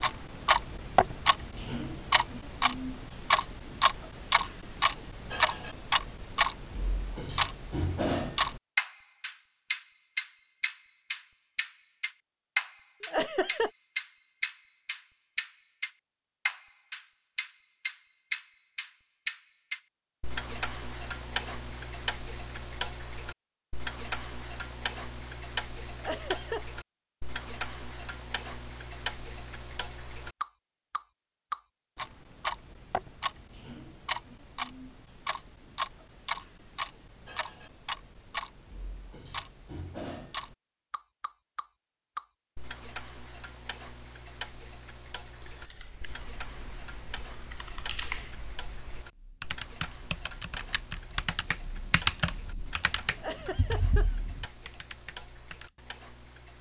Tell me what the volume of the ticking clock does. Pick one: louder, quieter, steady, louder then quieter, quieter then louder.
quieter.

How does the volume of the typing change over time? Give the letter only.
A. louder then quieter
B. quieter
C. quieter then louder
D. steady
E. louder
A.